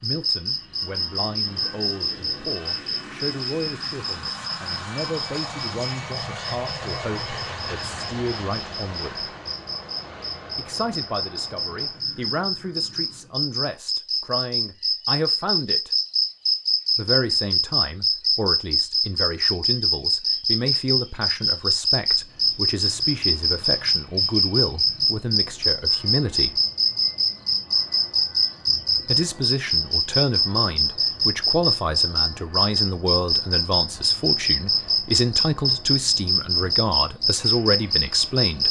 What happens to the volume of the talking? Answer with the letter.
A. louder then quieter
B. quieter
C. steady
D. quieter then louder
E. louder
E.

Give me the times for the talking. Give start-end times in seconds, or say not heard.
0.0-9.3, 10.6-15.9, 16.9-26.6, 29.1-38.6.